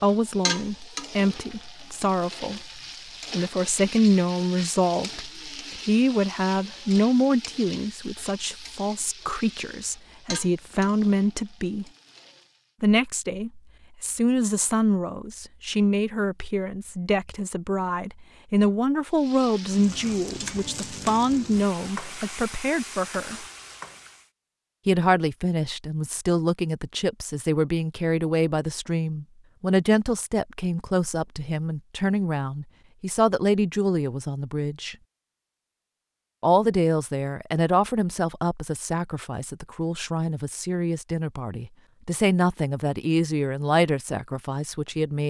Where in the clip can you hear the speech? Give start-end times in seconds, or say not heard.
0.0-11.8, 12.8-23.4, 24.9-35.0, 36.4-45.2.